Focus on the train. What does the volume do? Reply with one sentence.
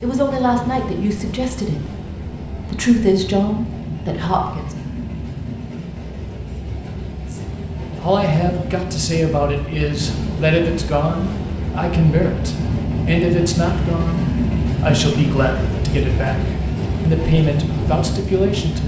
The loudness of the train goes up.